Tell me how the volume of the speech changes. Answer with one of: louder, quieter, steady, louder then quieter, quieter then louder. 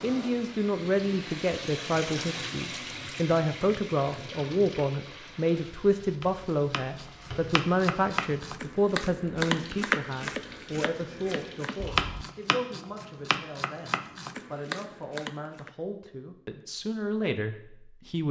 quieter.